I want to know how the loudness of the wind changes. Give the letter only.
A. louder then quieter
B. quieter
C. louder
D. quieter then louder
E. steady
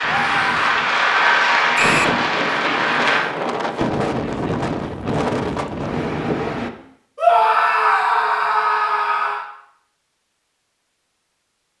C.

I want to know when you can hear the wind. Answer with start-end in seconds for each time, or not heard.
0.0-6.7.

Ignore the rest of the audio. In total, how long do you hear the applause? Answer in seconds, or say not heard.
3 s.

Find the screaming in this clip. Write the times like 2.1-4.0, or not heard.
0.1-0.7, 7.2-9.4.